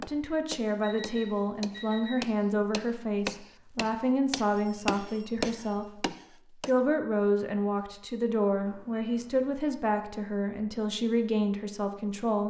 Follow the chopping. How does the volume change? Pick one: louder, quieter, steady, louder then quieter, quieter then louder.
louder.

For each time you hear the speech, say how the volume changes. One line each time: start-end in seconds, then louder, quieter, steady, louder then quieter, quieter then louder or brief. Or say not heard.
0.0-12.4 steady.